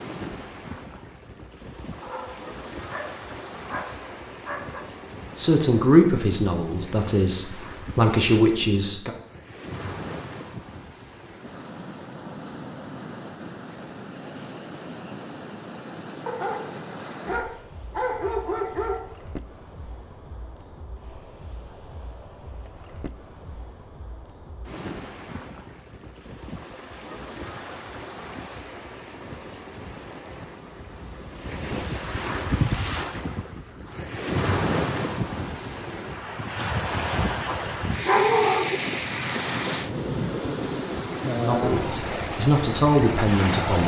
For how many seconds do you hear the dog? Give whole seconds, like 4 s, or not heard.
7 s.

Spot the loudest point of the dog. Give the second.
38 s.